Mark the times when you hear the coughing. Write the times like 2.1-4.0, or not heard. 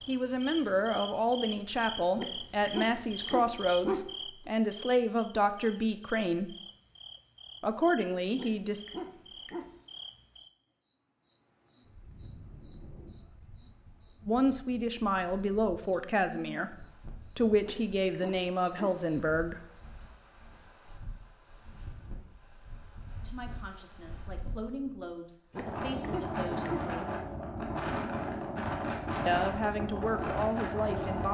not heard.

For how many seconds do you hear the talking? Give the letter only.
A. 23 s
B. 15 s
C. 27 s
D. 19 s
D.